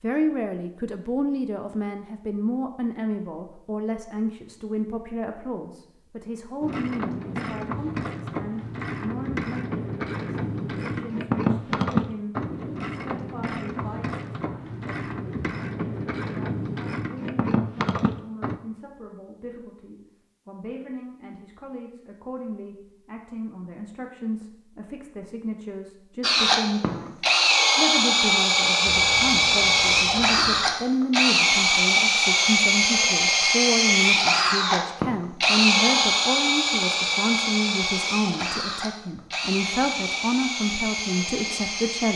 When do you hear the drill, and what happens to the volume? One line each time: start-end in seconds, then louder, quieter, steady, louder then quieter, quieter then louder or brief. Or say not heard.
26.2-42.1 quieter.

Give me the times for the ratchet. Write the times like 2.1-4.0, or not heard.
6.6-18.6.